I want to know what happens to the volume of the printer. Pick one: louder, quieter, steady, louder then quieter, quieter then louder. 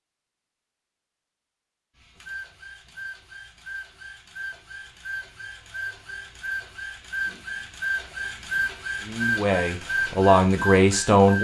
louder.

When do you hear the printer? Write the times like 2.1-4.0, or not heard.
1.9-11.3.